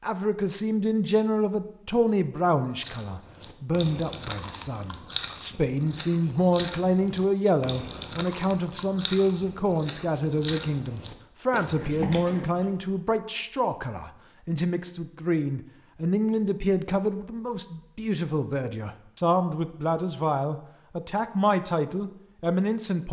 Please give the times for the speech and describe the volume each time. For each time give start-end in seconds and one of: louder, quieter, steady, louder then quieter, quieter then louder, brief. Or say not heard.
0.0-23.0 steady.